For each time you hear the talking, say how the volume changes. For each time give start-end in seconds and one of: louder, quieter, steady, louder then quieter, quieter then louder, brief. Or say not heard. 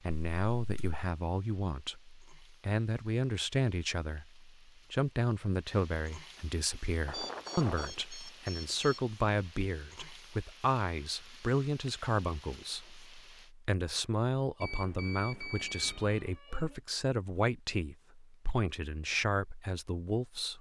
0.0-20.5 steady.